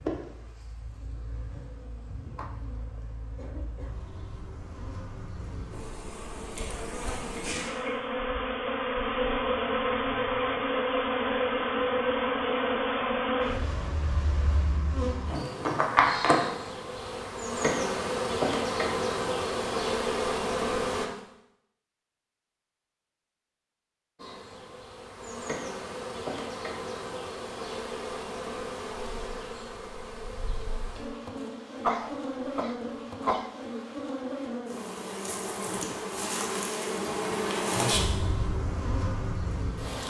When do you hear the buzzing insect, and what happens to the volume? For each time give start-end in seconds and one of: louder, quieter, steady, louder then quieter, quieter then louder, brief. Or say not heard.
0.0-21.1 louder
24.1-40.0 louder.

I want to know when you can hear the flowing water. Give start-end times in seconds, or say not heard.
not heard.